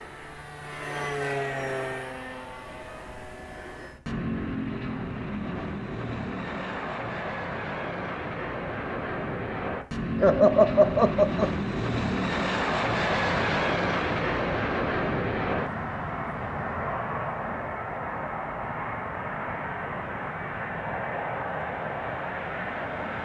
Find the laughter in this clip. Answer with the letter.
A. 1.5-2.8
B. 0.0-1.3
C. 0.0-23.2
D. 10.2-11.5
D.